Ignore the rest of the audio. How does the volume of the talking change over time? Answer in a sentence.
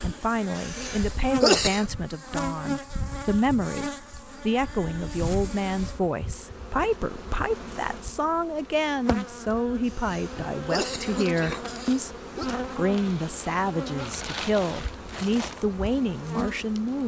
The volume of the talking stays about the same.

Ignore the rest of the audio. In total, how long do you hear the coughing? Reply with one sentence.
You can hear the coughing for 4 seconds altogether.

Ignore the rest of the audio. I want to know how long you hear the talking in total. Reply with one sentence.
The talking can be heard for 16 seconds in total.